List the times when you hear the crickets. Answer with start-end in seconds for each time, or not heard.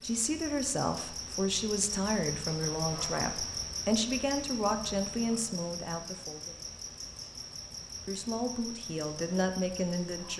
0.0-10.3.